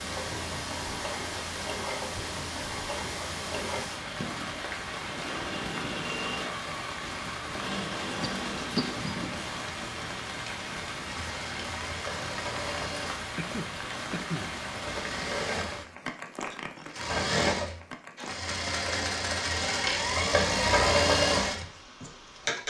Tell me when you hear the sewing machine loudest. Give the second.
21 s.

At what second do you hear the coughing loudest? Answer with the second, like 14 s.
9 s.